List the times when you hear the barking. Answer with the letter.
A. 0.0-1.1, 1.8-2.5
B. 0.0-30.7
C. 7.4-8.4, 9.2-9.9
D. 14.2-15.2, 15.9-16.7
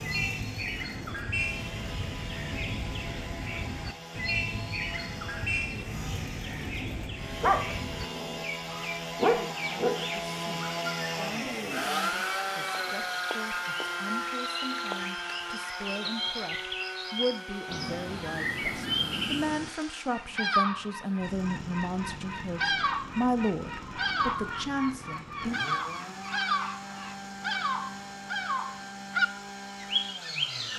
C.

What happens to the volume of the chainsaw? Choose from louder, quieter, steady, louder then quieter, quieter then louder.
louder then quieter.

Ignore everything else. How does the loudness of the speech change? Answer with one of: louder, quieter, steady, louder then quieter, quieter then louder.
louder.